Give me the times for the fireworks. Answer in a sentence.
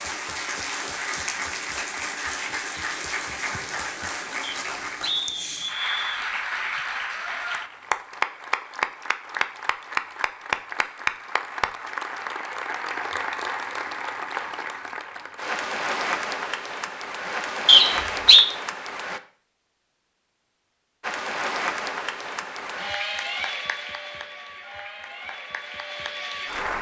The fireworks can't be heard in this clip.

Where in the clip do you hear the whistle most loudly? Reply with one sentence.
The volume of the whistle peaks at 18 seconds.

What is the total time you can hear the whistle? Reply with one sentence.
The whistle can be heard for 3 seconds in total.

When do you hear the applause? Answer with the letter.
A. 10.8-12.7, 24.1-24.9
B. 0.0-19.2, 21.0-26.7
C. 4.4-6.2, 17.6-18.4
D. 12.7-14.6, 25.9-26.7
B.